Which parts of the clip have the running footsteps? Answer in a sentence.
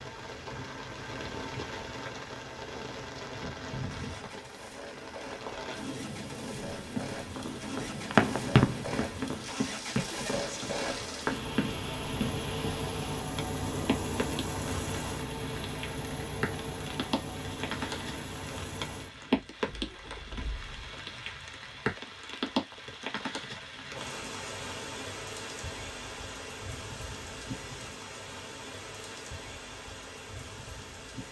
You can hear the running footsteps from 6.5 to 12.8 s.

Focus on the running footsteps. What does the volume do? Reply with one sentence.
The loudness of the running footsteps goes up, then down.